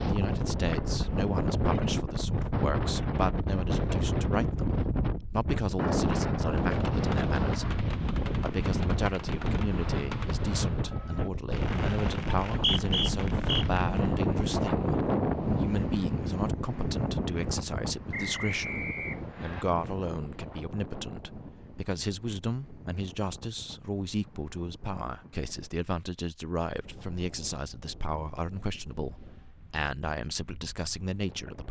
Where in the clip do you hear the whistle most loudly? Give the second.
13 s.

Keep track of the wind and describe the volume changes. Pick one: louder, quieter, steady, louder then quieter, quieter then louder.
quieter.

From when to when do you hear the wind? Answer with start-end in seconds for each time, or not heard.
0.0-31.6.